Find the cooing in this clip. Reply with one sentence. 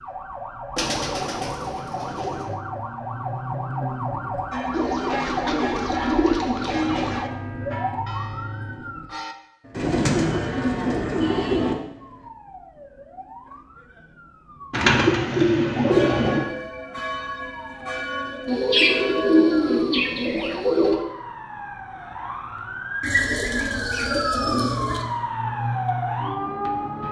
The cooing can be heard from 0.8 to 2.5 s, from 4.7 to 7.2 s, from 9.8 to 11.8 s, from 14.7 to 16.4 s, from 18.4 to 21.0 s and from 23.0 to 25.1 s.